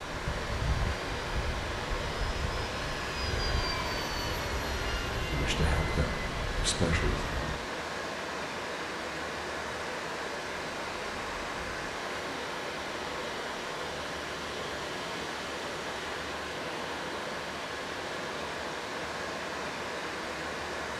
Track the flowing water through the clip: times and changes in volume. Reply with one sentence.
The flowing water can be heard from 0.0 to 20.9 s, at a steady volume.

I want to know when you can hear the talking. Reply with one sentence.
You can hear the talking from 5.2 to 7.2 s.